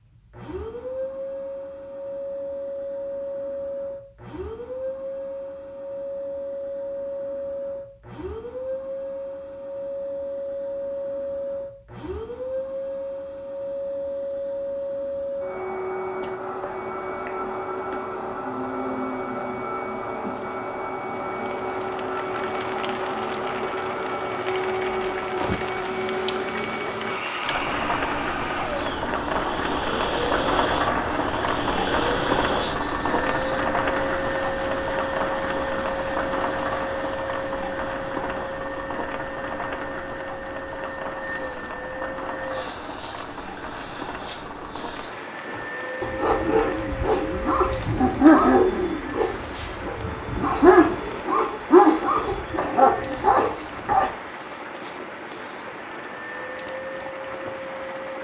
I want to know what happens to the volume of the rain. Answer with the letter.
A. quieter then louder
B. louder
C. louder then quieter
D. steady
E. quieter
C.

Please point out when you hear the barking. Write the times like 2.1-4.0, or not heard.
45.5-54.1.